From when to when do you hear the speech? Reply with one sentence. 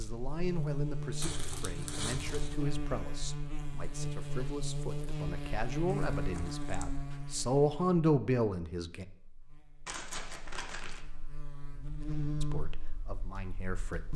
You can hear the speech from 0.0 to 9.1 s and from 12.4 to 14.1 s.